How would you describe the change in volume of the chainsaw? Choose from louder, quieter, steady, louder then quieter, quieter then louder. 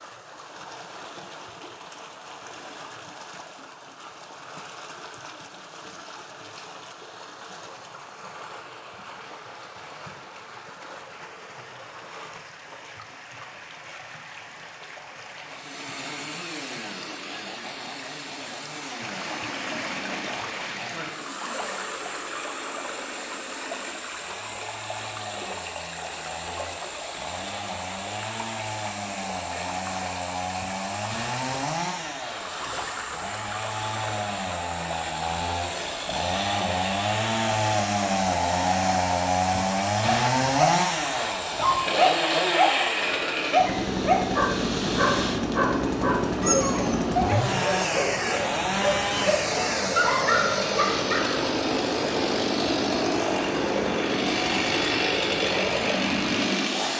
louder.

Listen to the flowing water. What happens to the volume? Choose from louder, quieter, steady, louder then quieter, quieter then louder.
louder.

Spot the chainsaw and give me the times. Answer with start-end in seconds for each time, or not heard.
15.4-56.9.